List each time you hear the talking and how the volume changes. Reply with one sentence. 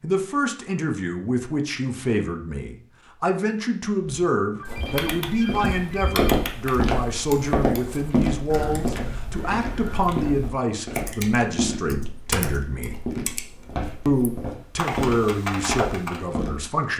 You can hear the talking from 0.0 to 13.0 s, at a steady volume; and briefly from 14.1 to 16.9 s.